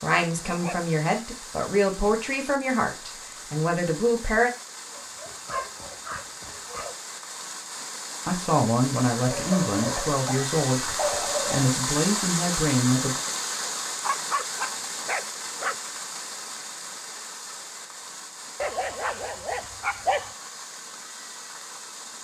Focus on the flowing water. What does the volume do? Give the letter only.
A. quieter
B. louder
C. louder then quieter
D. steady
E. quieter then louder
C.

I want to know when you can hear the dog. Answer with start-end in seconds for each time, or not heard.
0.4-0.9, 5.0-7.0, 9.3-11.7, 14.0-16.0, 18.6-20.4.